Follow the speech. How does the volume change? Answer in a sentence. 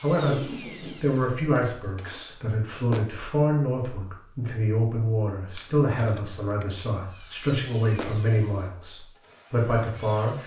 The loudness of the speech stays about the same.